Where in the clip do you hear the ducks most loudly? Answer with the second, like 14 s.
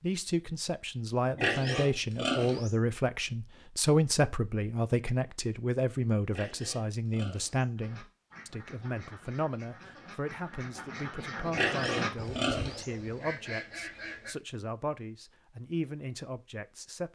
12 s.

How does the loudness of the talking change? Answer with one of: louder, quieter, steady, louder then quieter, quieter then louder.
quieter.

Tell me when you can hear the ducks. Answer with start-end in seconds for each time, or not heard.
7.8-14.3.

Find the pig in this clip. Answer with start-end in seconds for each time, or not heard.
1.3-2.8, 6.2-7.7, 11.4-12.9.